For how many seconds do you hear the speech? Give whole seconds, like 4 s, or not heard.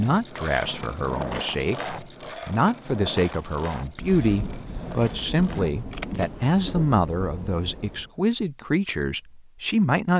10 s.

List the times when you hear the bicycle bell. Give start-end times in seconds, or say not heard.
not heard.